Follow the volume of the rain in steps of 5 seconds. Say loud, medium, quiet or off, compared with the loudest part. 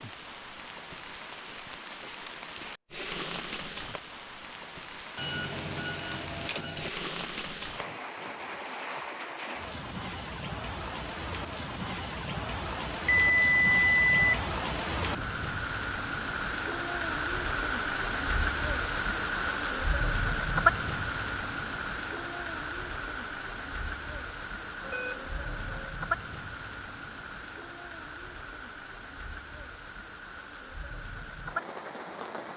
medium, medium, loud, loud, loud, medium, medium.